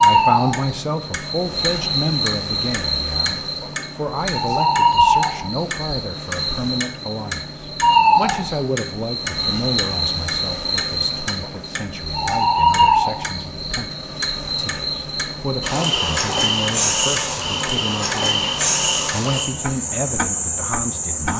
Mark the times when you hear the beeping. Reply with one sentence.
You can't hear the beeping here.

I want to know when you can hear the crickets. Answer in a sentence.
The crickets can be heard from 0.0 to 21.3 s.